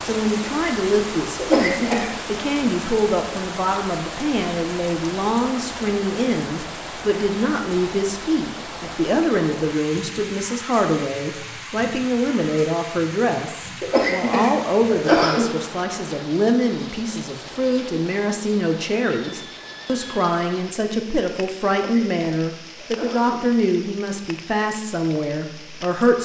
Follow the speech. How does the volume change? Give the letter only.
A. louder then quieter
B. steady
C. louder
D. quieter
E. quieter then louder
B.